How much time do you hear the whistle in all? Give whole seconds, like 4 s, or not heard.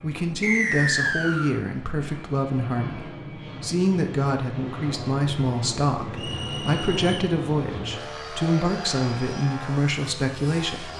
2 s.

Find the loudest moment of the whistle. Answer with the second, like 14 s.
1 s.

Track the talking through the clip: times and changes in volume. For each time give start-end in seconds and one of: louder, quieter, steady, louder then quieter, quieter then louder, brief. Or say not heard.
0.0-10.9 steady.